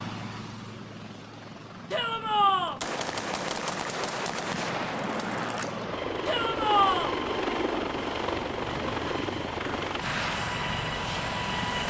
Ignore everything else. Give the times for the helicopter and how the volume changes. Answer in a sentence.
The helicopter can be heard from 0.0 to 11.8 s, getting louder.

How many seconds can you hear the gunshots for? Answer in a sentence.
You can hear the gunshots for 3 seconds altogether.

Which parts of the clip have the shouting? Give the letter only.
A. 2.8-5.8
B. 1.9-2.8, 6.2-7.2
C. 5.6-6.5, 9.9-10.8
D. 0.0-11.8
B.